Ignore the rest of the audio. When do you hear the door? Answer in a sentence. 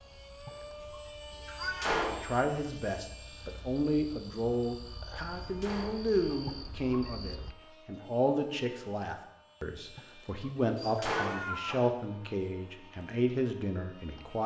The door can be heard from 1.6 to 2.3 s, from 5.3 to 6.3 s and from 10.8 to 11.8 s.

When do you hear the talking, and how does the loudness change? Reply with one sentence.
You can hear the talking from 2.1 to 14.4 s, at a steady volume.